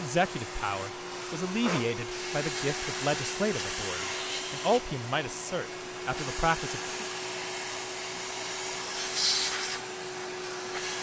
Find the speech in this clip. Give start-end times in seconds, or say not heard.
0.0-6.9.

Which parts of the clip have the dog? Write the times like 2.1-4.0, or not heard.
not heard.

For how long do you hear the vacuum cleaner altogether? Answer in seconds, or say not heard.
11 s.